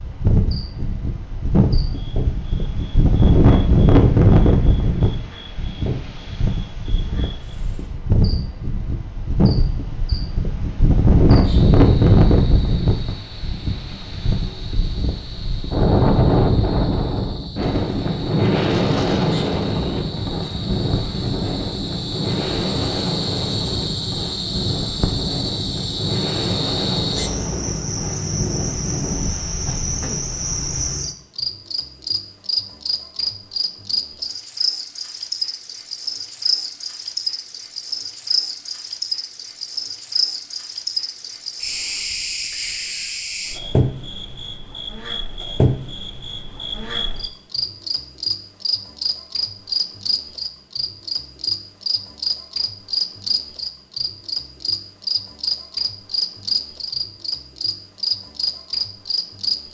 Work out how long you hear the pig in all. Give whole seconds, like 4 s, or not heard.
not heard.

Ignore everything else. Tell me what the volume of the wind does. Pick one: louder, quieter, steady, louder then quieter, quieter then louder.
quieter.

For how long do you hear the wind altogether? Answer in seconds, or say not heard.
31 s.